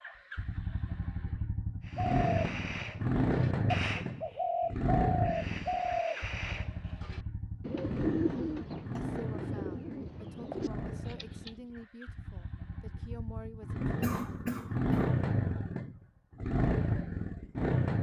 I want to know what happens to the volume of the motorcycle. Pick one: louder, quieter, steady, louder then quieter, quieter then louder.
quieter then louder.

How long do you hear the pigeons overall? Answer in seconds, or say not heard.
10 s.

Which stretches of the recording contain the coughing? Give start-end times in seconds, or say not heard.
14.0-15.2.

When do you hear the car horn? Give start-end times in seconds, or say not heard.
not heard.